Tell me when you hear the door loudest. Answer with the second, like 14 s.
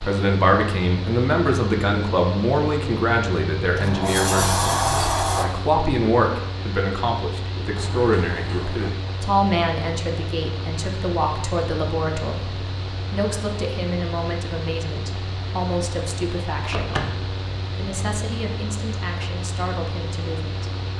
5 s.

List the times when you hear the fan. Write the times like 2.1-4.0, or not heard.
0.0-20.9.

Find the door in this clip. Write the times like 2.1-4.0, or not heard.
3.8-5.5, 7.8-9.0, 16.6-17.2.